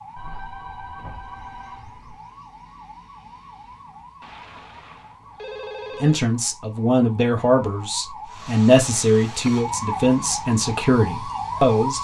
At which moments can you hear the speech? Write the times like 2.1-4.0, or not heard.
6.0-11.9.